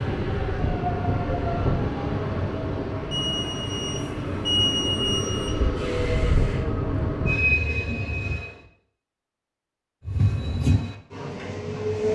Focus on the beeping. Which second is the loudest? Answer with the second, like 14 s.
5 s.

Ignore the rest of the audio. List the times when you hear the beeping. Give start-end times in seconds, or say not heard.
3.1-5.6.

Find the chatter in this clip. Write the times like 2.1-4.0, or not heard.
not heard.